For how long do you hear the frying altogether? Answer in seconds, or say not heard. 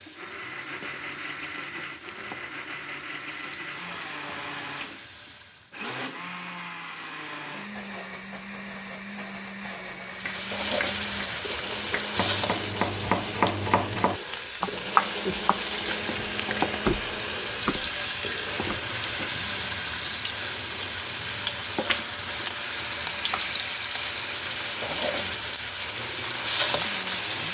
23 s.